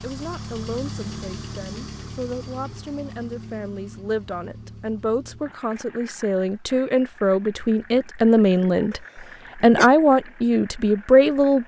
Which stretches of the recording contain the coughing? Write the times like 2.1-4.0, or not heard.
8.9-9.9.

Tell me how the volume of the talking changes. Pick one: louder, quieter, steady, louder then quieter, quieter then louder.
louder.